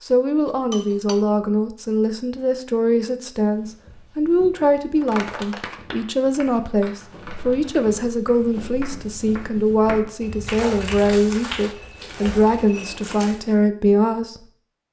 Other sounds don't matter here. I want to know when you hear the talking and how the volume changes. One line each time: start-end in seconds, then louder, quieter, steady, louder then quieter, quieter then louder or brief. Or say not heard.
0.0-14.4 steady.